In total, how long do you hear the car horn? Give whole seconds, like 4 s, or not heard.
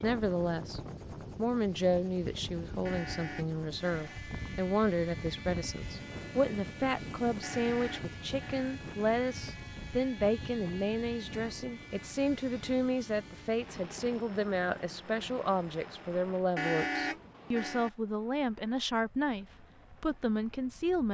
4 s.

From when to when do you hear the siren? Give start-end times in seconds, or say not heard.
not heard.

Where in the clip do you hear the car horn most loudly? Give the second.
17 s.